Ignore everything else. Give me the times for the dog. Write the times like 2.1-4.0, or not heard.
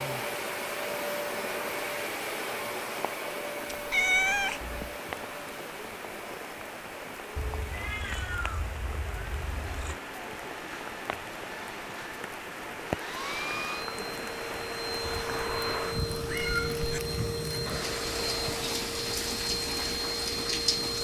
not heard.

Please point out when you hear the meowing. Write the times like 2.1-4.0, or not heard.
3.7-4.9, 7.3-10.0, 15.2-17.0.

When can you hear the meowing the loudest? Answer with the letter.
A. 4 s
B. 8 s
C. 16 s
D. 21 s
A.